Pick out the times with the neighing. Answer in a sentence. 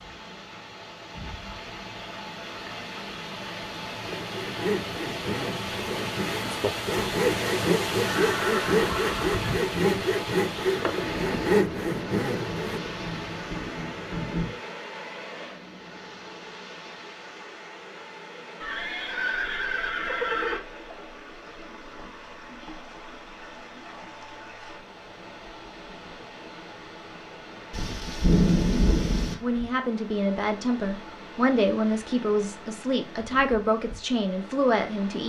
You can hear the neighing from 8.0 to 9.3 s and from 18.6 to 20.6 s.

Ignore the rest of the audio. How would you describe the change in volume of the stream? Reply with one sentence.
The loudness of the stream goes down.